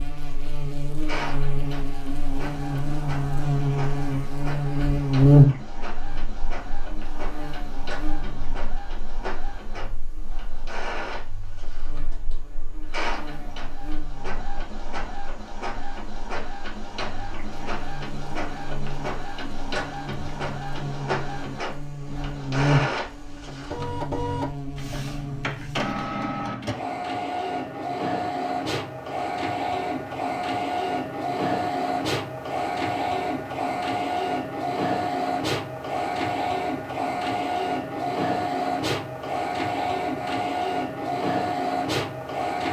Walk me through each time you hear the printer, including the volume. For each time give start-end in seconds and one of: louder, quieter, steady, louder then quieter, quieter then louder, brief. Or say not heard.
0.2-42.6 louder.